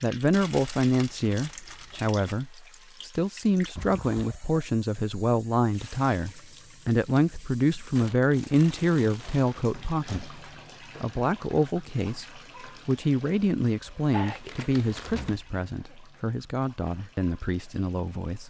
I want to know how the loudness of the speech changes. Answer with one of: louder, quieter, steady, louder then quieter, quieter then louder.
quieter.